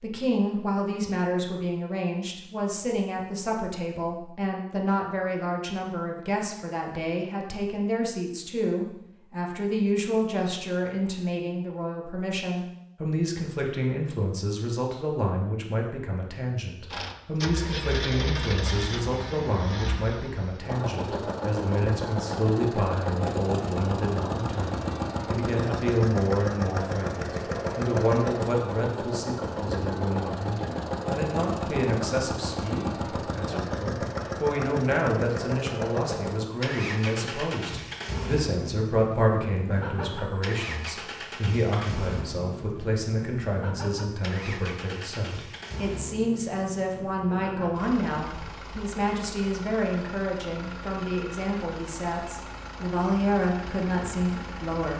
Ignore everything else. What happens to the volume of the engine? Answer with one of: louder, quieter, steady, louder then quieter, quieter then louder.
quieter.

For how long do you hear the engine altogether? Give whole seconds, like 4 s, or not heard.
38 s.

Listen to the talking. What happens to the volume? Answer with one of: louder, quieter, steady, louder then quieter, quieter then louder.
steady.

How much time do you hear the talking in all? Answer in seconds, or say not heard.
55 s.